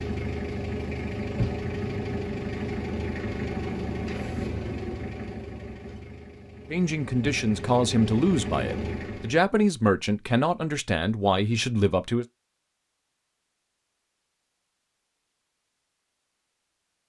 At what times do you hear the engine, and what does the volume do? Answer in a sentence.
You can hear the engine from 0.0 to 9.4 s, getting quieter then louder.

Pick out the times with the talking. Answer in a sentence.
The talking can be heard from 6.7 to 12.2 s.